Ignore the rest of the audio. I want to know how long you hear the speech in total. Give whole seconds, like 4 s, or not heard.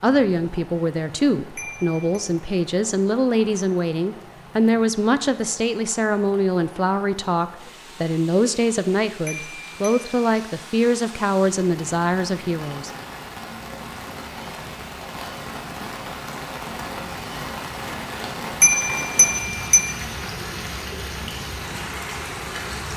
13 s.